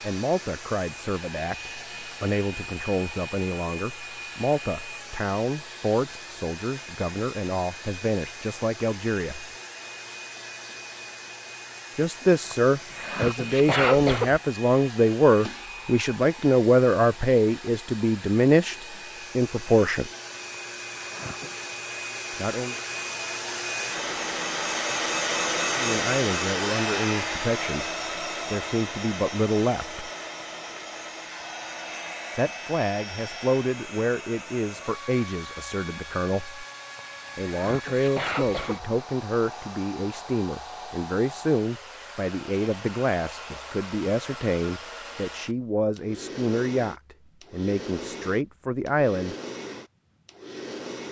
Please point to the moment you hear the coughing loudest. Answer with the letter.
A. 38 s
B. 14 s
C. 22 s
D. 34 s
B.